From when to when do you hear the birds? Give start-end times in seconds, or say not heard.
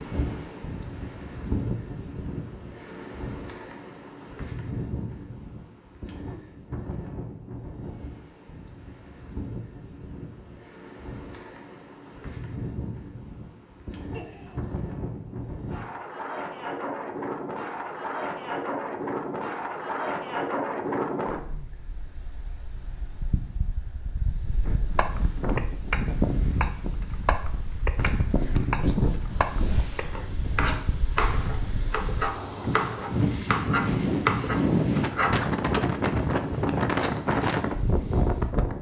not heard.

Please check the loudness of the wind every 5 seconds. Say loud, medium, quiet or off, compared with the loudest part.
medium, quiet, quiet, medium, medium, medium, loud, loud.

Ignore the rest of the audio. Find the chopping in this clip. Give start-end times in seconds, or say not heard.
24.9-35.9.